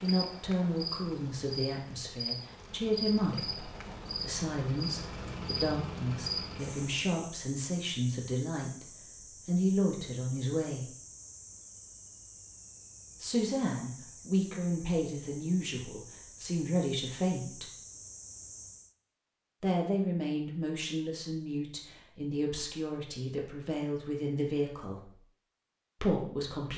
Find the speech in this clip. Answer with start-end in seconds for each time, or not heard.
0.0-8.8, 9.4-10.9, 13.2-17.6, 19.6-25.1, 26.0-26.7.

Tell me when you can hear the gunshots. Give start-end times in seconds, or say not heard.
not heard.